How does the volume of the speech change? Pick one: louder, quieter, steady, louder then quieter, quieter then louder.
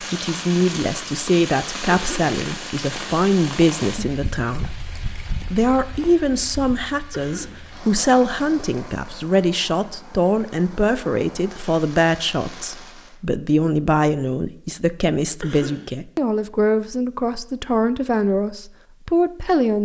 steady.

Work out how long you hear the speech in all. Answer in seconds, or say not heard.
19 s.